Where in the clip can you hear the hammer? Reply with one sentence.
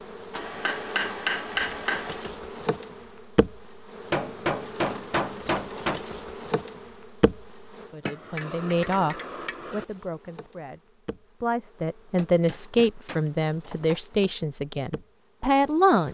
The hammer can be heard from 0.3 to 2.3 s, from 4.1 to 6.0 s, from 8.1 to 9.8 s and from 12.2 to 14.0 s.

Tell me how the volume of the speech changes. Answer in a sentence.
The loudness of the speech goes down, then up.